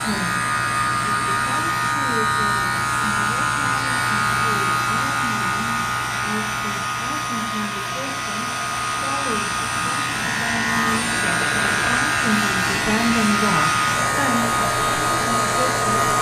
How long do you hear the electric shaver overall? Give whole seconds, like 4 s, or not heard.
16 s.